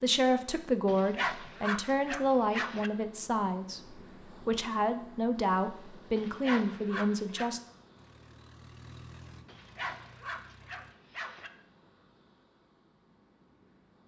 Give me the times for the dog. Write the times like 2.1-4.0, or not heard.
0.8-2.9, 6.2-7.5, 9.4-11.5.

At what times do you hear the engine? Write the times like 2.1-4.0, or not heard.
8.0-10.9.